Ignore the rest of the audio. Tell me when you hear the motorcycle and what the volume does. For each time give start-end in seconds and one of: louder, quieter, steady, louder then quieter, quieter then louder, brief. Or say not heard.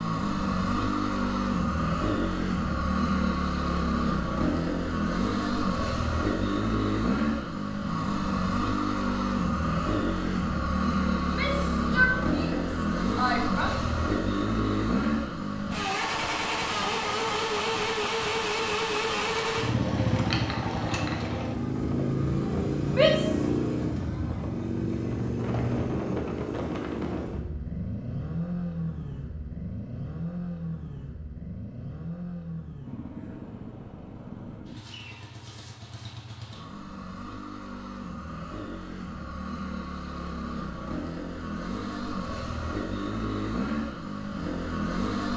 0.0-45.3 quieter.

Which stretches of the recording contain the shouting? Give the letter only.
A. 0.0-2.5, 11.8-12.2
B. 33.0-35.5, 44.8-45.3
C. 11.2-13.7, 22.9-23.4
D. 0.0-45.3
C.